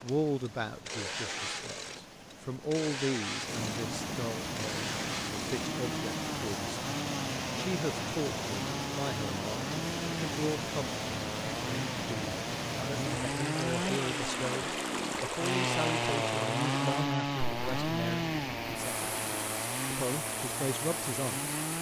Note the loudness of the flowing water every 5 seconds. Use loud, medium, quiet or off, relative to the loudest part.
medium, loud, loud, loud, loud.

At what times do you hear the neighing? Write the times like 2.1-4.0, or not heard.
not heard.